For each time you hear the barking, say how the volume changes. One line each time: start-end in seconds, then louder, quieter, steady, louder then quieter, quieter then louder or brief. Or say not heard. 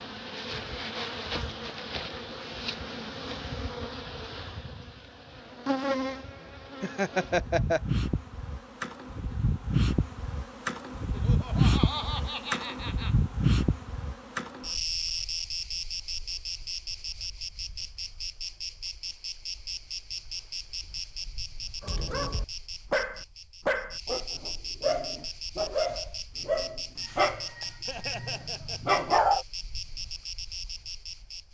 21.8-29.4 steady.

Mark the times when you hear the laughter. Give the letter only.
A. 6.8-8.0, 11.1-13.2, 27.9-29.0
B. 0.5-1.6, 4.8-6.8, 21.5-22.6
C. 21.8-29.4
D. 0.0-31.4
A.